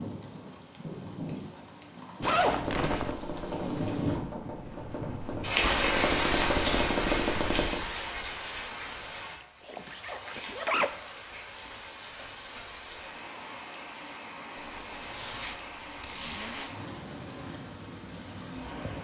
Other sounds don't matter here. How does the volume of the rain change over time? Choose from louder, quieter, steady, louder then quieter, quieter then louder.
louder then quieter.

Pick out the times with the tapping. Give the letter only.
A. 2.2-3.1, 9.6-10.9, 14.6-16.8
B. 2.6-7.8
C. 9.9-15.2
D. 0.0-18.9
B.